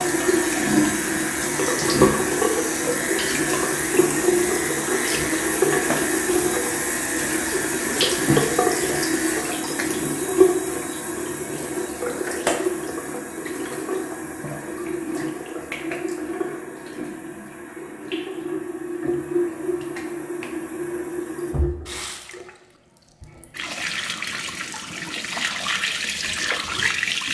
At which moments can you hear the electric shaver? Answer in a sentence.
You can hear the electric shaver from 0.0 to 9.4 s.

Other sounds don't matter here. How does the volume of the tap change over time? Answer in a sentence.
The loudness of the tap goes down.